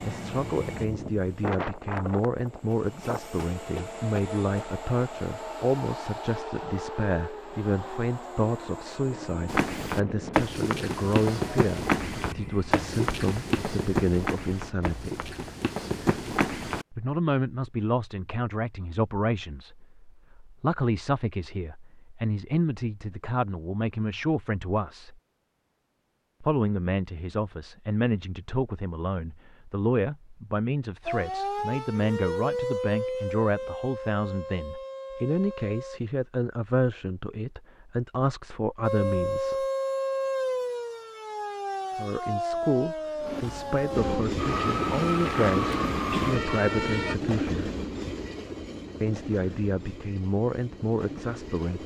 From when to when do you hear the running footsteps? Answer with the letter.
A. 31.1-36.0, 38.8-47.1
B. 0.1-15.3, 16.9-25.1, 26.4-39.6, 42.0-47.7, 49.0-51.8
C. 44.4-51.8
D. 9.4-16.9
D.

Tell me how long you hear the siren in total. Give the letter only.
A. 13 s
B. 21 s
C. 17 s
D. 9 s
A.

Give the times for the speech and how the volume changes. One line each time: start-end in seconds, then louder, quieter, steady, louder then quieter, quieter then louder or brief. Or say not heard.
0.1-15.3 steady
16.9-25.1 steady
26.4-39.6 steady
42.0-47.7 steady
49.0-51.8 brief.